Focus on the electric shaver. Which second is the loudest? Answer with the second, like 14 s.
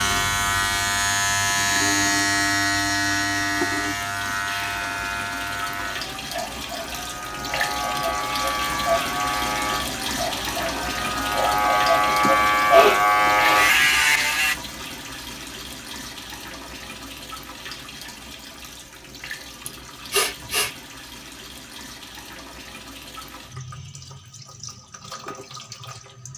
13 s.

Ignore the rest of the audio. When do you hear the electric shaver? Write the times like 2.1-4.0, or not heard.
0.0-14.6.